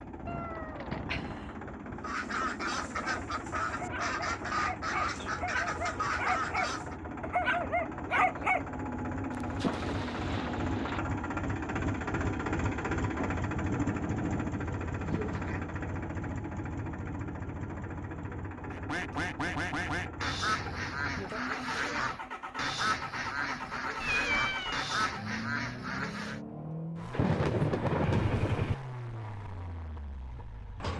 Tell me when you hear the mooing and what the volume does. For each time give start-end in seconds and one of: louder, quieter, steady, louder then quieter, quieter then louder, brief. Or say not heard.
not heard.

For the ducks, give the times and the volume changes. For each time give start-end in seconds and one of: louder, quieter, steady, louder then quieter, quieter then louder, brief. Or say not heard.
2.0-7.0 steady
18.7-26.4 steady.